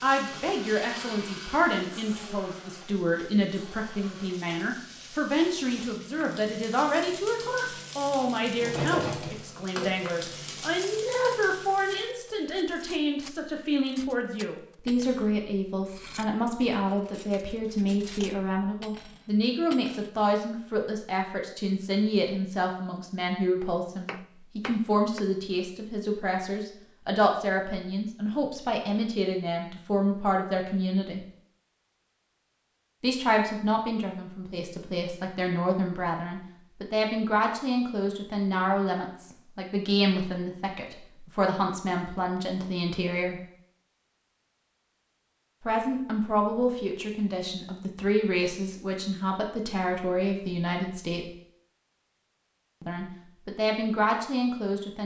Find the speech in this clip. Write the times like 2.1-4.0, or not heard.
0.0-31.2, 33.0-43.4, 45.6-51.3, 52.8-55.0.